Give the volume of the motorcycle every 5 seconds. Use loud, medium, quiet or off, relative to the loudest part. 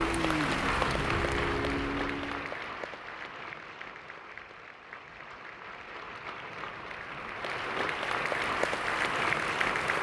loud, off.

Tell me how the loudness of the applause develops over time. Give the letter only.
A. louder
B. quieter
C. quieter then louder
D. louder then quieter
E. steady
C.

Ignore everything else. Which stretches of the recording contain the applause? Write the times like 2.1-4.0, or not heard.
0.0-9.9.